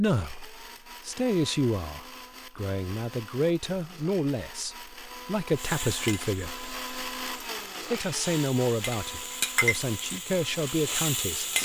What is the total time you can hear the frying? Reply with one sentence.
You can hear the frying for 6 seconds altogether.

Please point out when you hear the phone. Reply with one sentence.
You can't hear the phone here.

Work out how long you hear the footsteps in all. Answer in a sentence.
You can't hear the footsteps here.